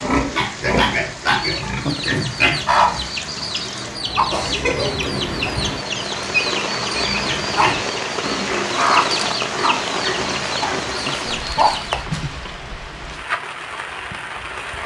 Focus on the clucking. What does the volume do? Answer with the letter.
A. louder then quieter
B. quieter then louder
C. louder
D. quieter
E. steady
E.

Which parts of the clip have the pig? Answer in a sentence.
You can hear the pig from 0.0 to 3.1 s and from 6.9 to 11.1 s.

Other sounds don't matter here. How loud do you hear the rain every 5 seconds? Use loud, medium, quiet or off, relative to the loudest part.
medium, loud, loud.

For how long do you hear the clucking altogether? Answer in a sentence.
You can hear the clucking for 11 seconds altogether.